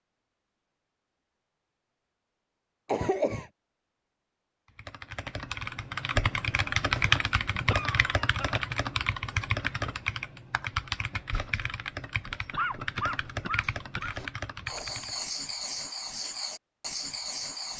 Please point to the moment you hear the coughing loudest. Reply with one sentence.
The volume of the coughing peaks at 3 seconds.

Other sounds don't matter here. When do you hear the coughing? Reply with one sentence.
The coughing can be heard from 2.9 to 3.5 s, from 7.7 to 8.7 s and from 12.5 to 14.2 s.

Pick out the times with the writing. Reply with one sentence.
The writing can be heard from 14.1 to 17.7 s.